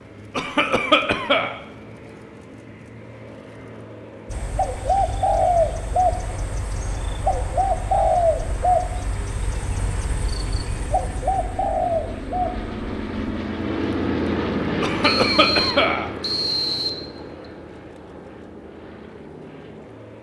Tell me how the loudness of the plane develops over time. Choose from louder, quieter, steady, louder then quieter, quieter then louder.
louder then quieter.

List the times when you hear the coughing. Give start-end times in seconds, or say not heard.
0.3-1.6, 14.8-16.1.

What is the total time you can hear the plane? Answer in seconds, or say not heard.
20 s.